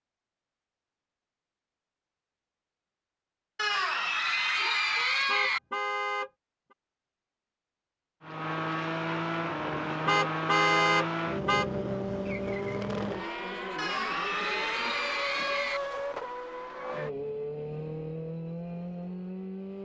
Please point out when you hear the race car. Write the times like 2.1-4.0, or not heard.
8.2-19.8.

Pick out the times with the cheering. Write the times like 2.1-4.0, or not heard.
3.5-5.6, 13.8-15.8.